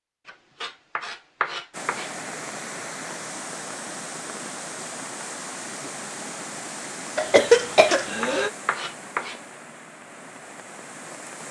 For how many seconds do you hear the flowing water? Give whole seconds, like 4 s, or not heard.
10 s.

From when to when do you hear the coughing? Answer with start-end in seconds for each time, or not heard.
7.2-8.5.